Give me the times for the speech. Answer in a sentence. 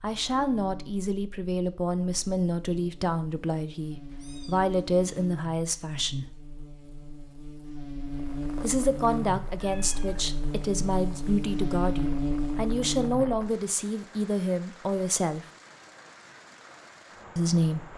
The speech can be heard from 0.0 to 6.2 s, from 8.6 to 15.4 s and from 17.4 to 17.9 s.